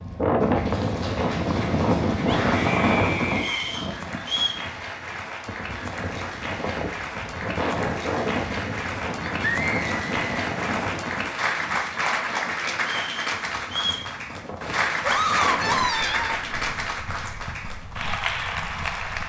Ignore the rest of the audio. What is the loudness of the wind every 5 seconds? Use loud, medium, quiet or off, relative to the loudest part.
loud, medium, medium, quiet.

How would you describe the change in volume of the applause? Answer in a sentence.
The loudness of the applause goes up.